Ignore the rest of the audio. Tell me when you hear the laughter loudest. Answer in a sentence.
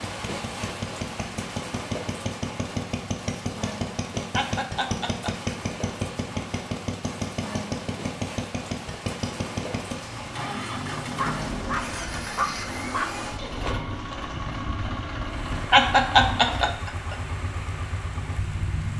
The loudest moment of the laughter is at 16 seconds.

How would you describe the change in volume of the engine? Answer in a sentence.
The loudness of the engine stays about the same.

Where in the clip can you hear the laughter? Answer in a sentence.
You can hear the laughter from 4.3 to 5.5 s and from 15.7 to 17.1 s.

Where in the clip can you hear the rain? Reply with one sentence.
You can hear the rain from 0.0 to 18.9 s.